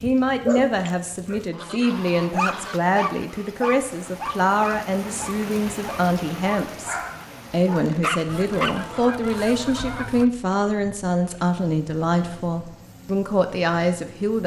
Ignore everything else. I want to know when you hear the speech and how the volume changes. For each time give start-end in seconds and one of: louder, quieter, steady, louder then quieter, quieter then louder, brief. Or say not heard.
0.0-14.4 steady.